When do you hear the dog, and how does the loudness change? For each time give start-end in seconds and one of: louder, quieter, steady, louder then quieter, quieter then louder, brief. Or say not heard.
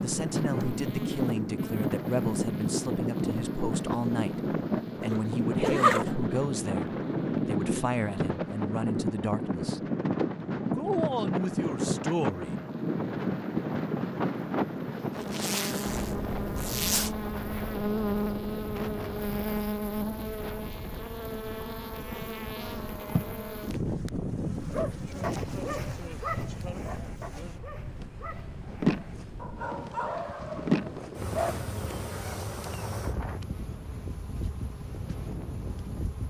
24.7-31.6 quieter then louder.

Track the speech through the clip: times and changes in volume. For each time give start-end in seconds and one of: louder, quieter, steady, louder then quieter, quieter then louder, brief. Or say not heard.
0.0-9.8 steady
10.8-12.7 brief.